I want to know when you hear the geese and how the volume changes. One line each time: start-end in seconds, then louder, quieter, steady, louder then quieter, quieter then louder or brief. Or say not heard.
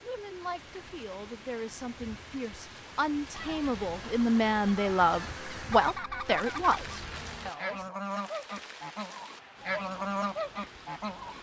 3.3-11.3 louder.